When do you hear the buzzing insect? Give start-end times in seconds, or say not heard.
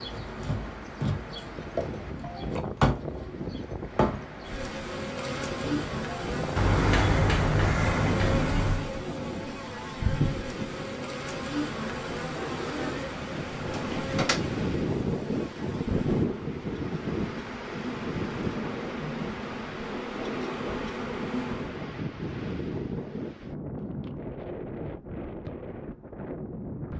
0.0-21.9.